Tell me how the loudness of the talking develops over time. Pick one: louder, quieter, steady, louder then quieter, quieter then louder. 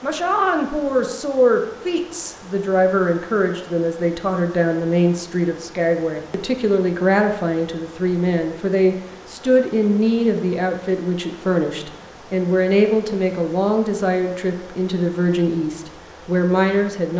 steady.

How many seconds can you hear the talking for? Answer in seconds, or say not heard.
17 s.